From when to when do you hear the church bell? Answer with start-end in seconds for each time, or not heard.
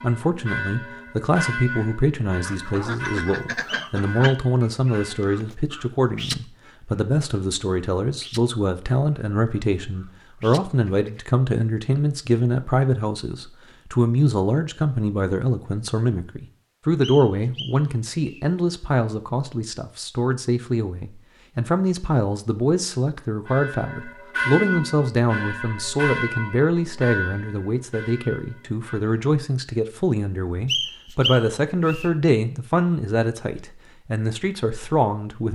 0.0-5.3, 23.4-29.1.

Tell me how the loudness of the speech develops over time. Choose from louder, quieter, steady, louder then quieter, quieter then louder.
steady.